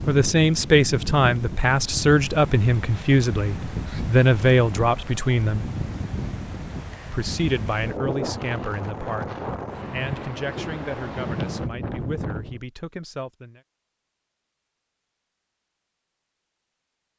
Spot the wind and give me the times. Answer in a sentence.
The wind can be heard from 0.0 to 12.6 s.